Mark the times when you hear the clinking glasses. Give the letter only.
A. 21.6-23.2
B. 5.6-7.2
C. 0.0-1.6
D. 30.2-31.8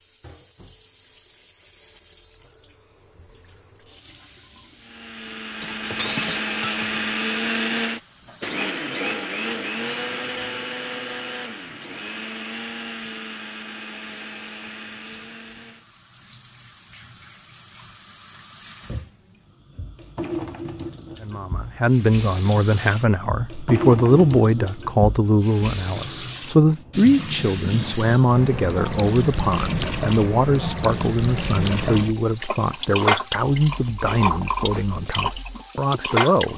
B.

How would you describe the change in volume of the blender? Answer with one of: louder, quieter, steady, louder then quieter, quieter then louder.
quieter.